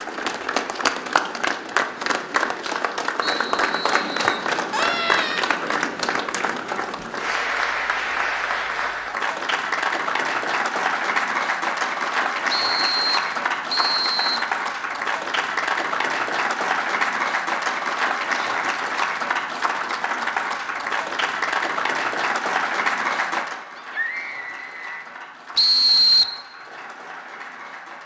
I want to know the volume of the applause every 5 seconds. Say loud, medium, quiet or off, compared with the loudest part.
loud, loud, loud, loud, loud, quiet.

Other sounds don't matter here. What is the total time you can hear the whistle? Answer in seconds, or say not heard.
4 s.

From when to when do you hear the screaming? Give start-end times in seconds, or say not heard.
4.7-5.5, 23.8-25.1.